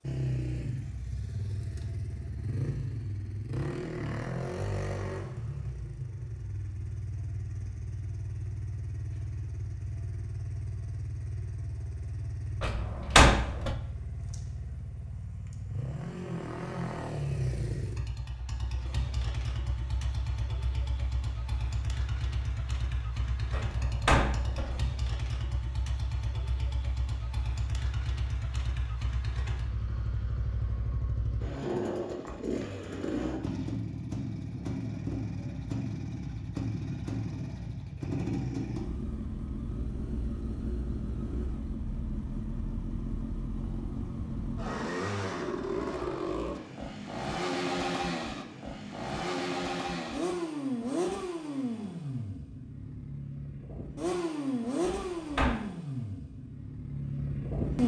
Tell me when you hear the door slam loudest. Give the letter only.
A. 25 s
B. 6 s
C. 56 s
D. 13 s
D.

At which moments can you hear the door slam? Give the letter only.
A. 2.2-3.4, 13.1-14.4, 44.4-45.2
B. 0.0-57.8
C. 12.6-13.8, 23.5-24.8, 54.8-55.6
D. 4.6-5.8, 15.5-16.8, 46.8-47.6
C.